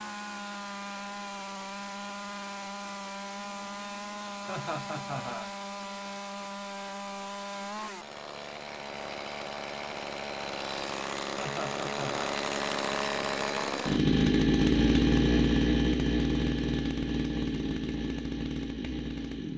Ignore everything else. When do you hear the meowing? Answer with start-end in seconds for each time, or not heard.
not heard.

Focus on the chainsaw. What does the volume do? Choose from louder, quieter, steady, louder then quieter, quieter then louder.
louder.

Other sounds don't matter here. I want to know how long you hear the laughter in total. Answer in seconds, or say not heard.
2 s.